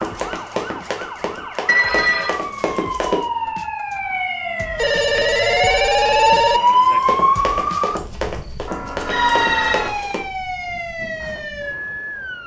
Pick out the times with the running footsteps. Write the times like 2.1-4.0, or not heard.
0.0-3.2, 7.0-10.2.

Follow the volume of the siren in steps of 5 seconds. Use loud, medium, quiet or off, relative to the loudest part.
medium, loud, medium.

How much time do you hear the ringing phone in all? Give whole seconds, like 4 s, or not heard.
4 s.